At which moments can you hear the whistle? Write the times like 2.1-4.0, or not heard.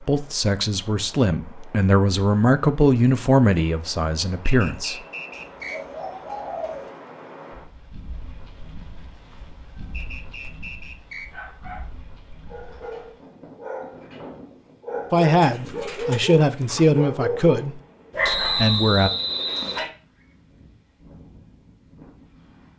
4.5-5.8, 9.9-11.2, 18.2-19.9.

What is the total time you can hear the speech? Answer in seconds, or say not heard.
9 s.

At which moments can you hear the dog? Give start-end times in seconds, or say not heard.
9.7-10.5, 11.2-19.9.